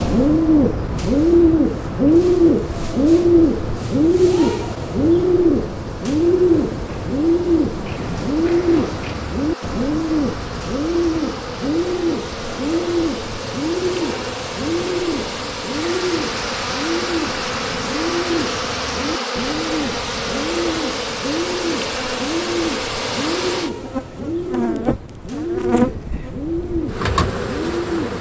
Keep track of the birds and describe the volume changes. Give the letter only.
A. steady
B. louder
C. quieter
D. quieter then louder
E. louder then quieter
C.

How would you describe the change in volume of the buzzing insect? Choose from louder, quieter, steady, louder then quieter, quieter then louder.
louder.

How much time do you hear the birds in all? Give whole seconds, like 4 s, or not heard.
28 s.